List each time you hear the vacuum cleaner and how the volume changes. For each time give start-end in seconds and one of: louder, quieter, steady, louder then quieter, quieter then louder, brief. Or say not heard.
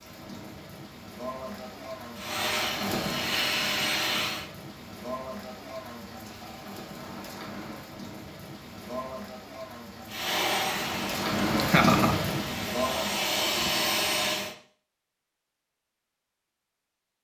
2.1-4.5 brief
10.1-14.6 quieter then louder.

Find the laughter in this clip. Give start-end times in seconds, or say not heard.
11.6-12.3.